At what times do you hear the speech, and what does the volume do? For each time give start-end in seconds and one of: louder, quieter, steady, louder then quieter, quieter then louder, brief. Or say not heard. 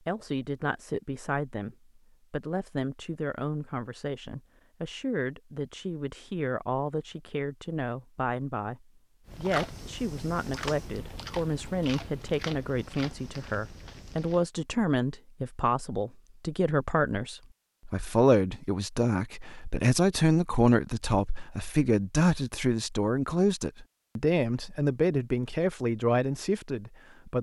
0.1-27.3 louder.